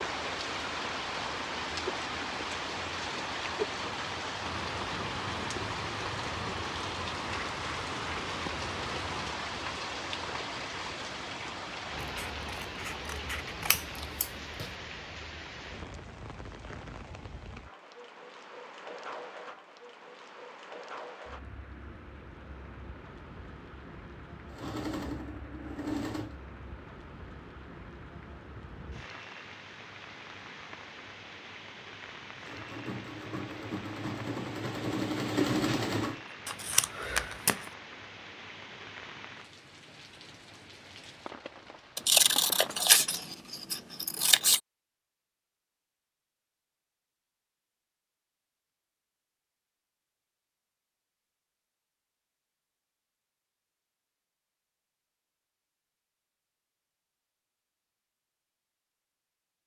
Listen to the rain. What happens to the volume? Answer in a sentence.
The volume of the rain goes down.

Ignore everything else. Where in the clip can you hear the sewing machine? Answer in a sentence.
You can hear the sewing machine from 24.5 to 26.4 s and from 32.2 to 36.2 s.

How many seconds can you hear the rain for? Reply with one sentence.
You can hear the rain for 43 seconds altogether.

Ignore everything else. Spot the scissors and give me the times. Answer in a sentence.
You can hear the scissors from 12.0 to 14.7 s, from 36.5 to 37.6 s and from 42.0 to 44.6 s.